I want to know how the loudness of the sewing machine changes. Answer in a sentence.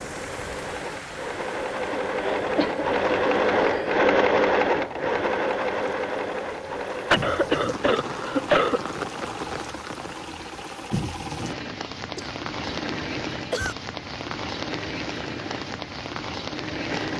The volume of the sewing machine goes down.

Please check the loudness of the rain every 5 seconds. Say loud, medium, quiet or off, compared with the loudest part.
medium, loud, loud, loud.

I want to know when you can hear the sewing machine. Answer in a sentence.
The sewing machine can be heard from 0.0 to 17.1 s.